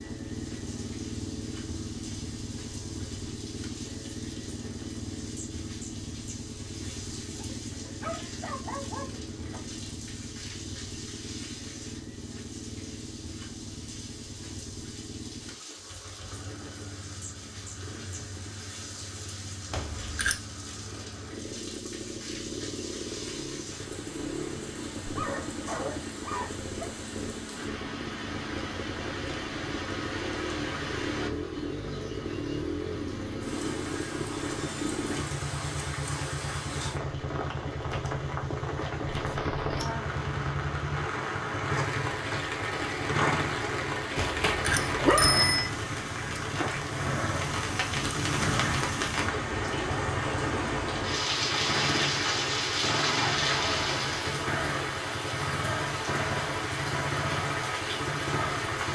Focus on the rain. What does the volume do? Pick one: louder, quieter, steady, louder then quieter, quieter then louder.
louder.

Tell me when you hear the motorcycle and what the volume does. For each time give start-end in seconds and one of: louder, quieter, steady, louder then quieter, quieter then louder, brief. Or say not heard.
0.0-58.8 louder.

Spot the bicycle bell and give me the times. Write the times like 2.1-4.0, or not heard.
19.7-20.4, 44.1-45.7.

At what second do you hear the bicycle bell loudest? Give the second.
45 s.